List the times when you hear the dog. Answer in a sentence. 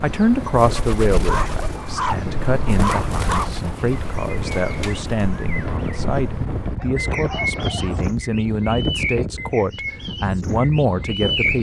The dog can be heard from 1.1 to 3.5 s and from 6.8 to 8.2 s.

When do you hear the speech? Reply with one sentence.
The speech can be heard from 0.0 to 11.5 s.